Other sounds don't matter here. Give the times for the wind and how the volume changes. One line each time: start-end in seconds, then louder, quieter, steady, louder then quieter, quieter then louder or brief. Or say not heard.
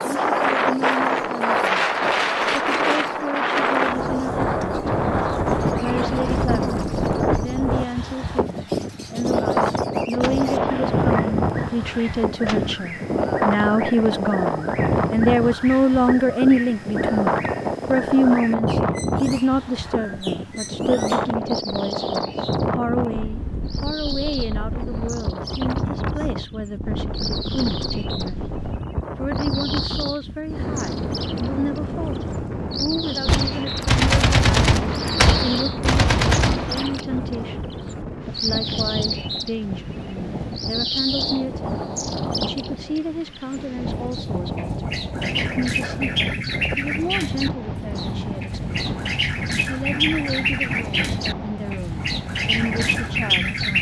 0.0-53.7 quieter.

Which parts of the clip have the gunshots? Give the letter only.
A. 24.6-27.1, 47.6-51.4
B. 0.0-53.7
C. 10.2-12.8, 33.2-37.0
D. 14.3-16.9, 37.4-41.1
C.